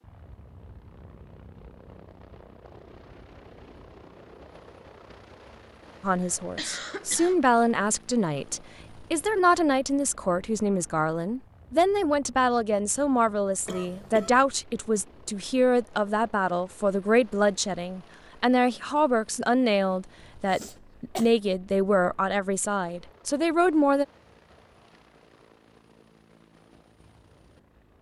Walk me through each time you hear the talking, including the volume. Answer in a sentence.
The talking can be heard from 6.0 to 24.1 s, at a steady volume.